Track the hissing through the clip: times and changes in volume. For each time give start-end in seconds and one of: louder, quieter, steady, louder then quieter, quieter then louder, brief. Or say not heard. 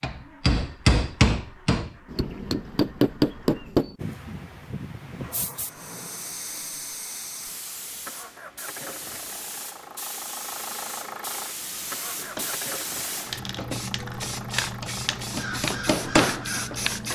4.0-17.1 louder.